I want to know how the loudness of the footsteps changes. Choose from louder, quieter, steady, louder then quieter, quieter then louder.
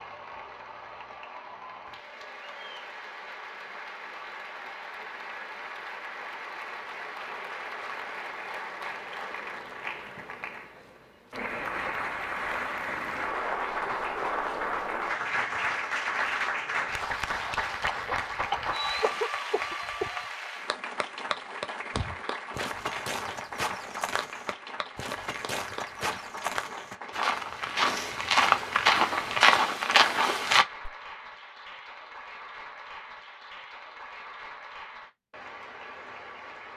louder.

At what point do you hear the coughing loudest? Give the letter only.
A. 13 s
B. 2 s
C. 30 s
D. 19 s
D.